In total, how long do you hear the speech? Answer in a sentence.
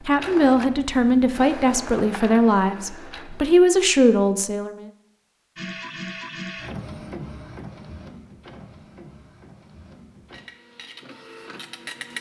You can hear the speech for 5 seconds altogether.